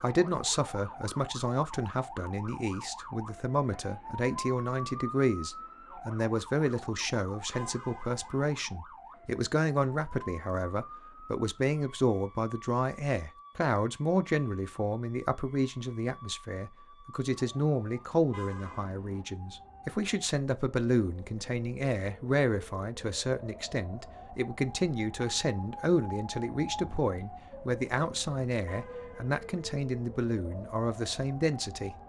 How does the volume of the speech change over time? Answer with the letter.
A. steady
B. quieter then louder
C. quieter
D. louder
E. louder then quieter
A.